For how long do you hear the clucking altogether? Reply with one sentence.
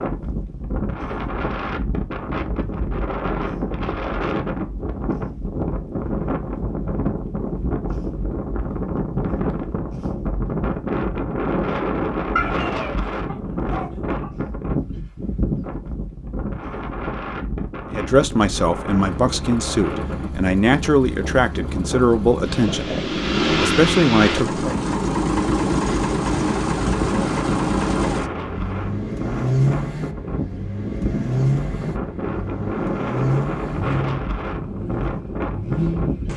The clucking can be heard for 2 seconds in total.